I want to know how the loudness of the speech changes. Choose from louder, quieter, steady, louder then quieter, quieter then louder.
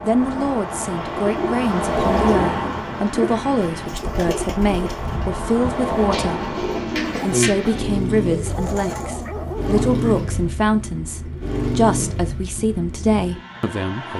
steady.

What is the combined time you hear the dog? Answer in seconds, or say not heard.
2 s.